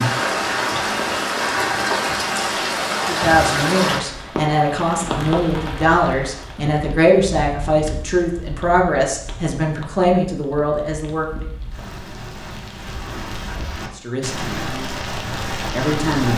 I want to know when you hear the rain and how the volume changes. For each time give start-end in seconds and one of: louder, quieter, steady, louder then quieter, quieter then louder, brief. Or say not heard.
0.0-16.3 quieter then louder.